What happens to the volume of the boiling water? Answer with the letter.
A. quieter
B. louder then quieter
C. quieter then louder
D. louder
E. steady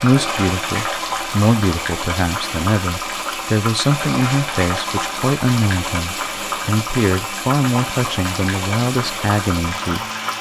E.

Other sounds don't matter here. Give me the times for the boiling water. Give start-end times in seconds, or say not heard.
0.0-10.3.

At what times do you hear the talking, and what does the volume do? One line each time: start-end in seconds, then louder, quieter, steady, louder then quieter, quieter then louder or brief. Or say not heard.
0.0-10.1 steady.